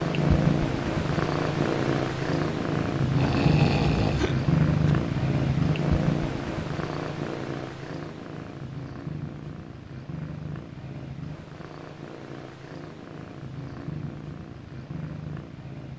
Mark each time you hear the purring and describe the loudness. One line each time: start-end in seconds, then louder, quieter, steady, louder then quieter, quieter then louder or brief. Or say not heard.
0.0-15.9 quieter.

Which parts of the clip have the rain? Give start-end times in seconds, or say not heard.
not heard.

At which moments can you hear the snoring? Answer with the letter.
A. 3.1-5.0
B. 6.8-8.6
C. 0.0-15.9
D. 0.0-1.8
A.